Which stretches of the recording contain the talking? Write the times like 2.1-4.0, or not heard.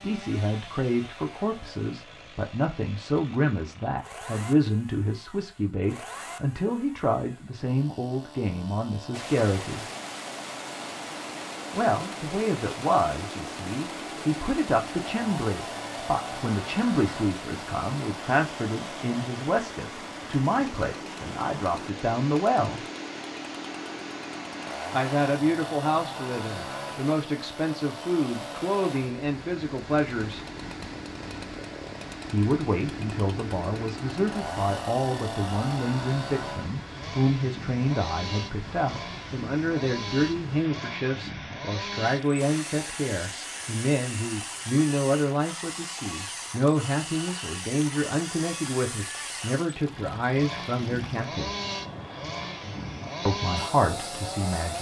0.0-9.8, 11.7-22.9, 24.9-30.4, 32.3-51.5, 53.2-54.7.